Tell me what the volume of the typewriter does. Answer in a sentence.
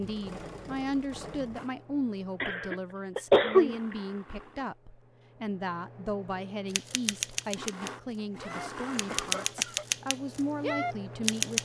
The volume of the typewriter goes down, then up.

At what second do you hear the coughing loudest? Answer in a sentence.
The volume of the coughing peaks at 3 seconds.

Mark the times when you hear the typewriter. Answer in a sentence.
You can hear the typewriter from 6.7 to 11.6 s.